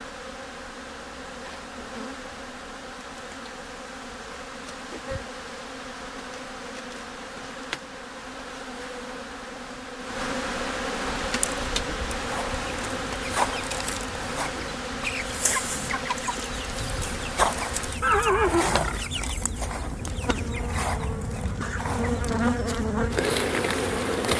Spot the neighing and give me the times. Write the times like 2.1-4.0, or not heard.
18.0-19.1.